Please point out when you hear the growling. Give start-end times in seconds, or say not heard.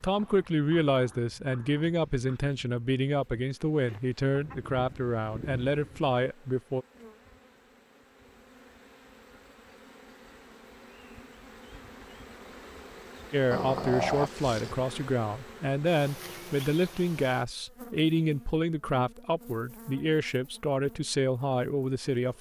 0.1-2.4, 13.5-14.8.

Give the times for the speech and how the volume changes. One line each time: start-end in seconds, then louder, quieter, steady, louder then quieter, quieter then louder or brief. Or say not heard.
0.0-6.8 steady
13.3-22.3 steady.